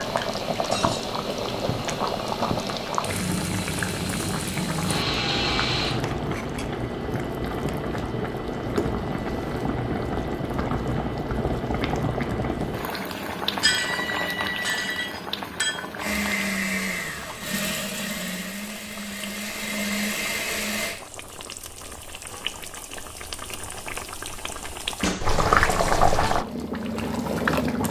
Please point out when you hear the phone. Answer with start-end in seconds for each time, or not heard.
13.7-15.1.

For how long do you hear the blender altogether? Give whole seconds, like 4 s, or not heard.
11 s.